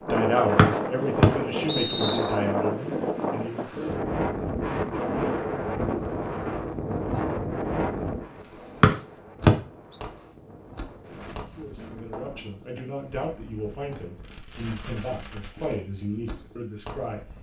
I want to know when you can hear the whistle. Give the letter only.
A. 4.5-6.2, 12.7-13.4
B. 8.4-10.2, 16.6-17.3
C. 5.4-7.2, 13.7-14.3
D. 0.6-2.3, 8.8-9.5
D.